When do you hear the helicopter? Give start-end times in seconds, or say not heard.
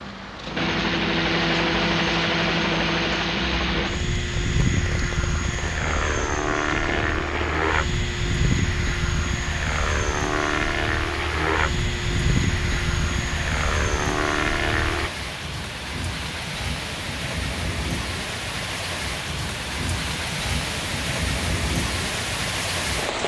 0.0-15.1.